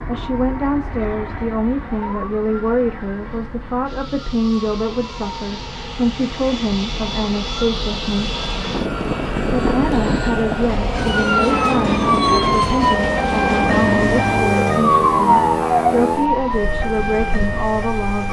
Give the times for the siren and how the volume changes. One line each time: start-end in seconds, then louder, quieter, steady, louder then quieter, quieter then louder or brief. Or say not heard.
0.1-18.2 louder.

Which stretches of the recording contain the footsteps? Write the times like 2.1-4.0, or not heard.
not heard.